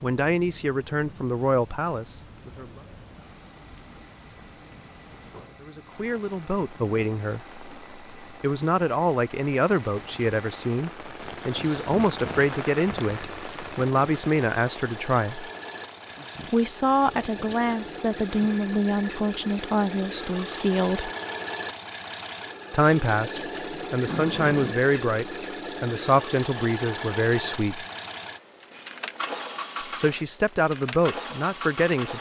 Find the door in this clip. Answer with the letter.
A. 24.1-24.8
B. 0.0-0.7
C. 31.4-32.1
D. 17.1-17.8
A.